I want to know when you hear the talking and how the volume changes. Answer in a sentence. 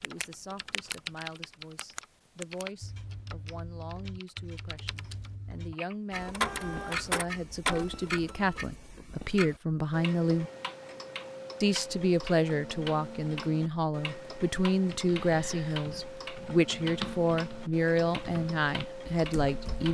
You can hear the talking from 0.0 to 10.5 s, getting louder; and from 11.6 to 19.9 s, at a steady volume.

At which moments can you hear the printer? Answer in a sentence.
The printer can be heard from 6.1 to 8.8 s.